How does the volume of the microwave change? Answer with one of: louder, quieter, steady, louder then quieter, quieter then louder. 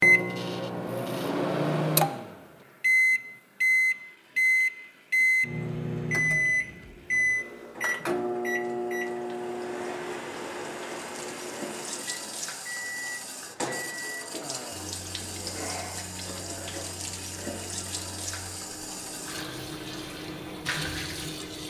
quieter.